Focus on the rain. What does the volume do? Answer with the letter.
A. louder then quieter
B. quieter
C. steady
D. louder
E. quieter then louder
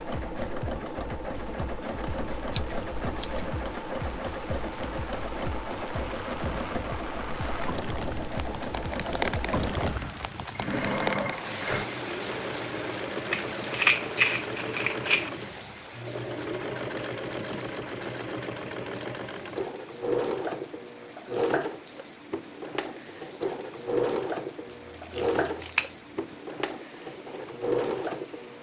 A.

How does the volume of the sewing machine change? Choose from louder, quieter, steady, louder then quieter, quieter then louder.
steady.